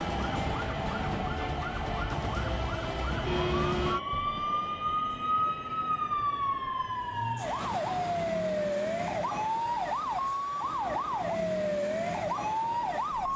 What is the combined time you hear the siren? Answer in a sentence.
You can hear the siren for 13 seconds altogether.